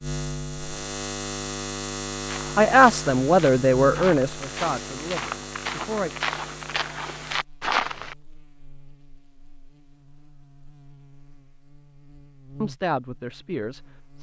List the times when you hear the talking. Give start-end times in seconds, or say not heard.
2.5-6.1, 12.6-14.1.